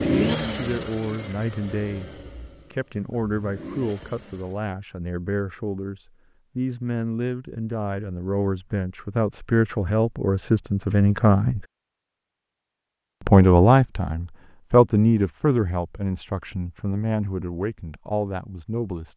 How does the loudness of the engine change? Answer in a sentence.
The loudness of the engine goes down, then up.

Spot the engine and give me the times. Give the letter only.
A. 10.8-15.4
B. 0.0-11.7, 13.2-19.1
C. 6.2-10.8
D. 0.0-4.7
D.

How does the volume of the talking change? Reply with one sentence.
The loudness of the talking goes up, then down.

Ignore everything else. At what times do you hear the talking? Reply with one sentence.
You can hear the talking from 0.0 to 11.7 s and from 13.2 to 19.1 s.